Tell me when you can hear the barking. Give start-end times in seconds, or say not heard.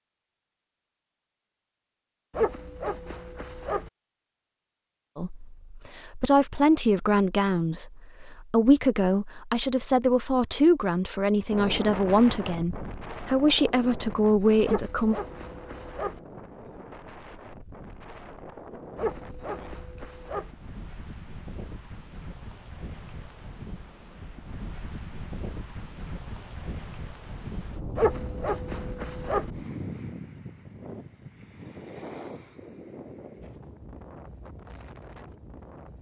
2.4-3.9, 14.7-16.2, 18.9-20.5, 27.9-29.5.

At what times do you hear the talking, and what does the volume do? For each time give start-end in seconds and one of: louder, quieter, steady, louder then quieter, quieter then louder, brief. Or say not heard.
5.2-15.2 steady.